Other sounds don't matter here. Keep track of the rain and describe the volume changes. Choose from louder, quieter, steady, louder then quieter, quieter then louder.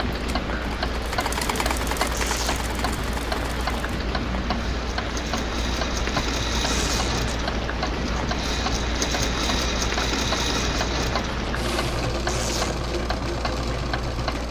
steady.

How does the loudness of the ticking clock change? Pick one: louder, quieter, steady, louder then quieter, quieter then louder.
steady.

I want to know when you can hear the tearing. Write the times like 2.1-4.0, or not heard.
2.1-2.7, 6.7-7.2, 12.2-12.8.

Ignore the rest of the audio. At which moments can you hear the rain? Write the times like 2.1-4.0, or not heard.
0.0-11.9.